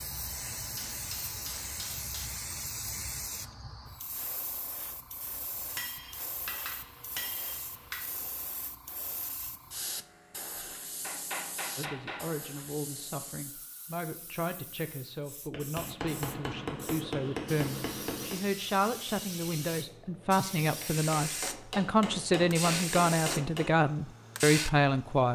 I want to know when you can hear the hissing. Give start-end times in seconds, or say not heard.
0.0-25.3.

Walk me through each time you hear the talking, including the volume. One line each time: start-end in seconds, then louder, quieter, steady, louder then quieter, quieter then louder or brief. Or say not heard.
11.8-25.3 louder.